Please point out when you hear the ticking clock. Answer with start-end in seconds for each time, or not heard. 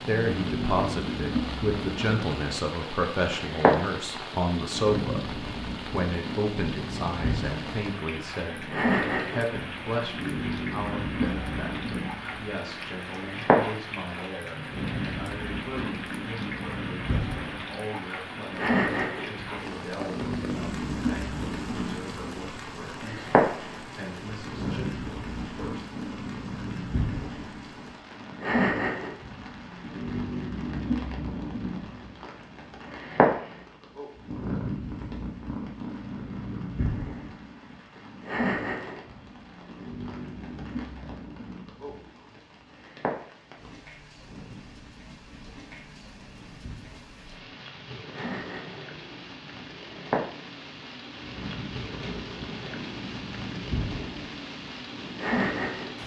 not heard.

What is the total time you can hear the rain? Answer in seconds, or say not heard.
56 s.